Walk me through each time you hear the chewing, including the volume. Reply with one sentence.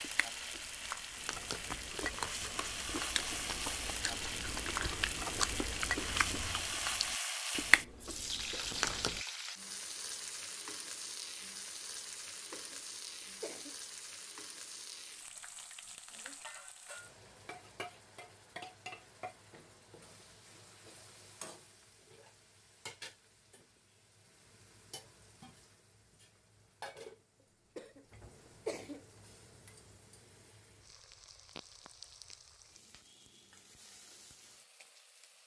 The chewing can be heard from 0.0 to 9.2 s, getting louder.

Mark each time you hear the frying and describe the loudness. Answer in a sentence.
You can hear the frying from 0.0 to 35.4 s, getting quieter.